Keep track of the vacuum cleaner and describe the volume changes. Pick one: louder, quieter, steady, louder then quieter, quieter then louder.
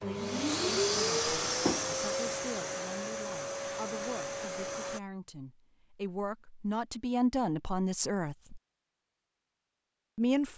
quieter.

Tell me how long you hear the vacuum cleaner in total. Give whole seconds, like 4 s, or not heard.
5 s.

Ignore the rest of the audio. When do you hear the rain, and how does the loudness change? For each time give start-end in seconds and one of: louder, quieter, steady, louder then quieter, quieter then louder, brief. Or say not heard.
not heard.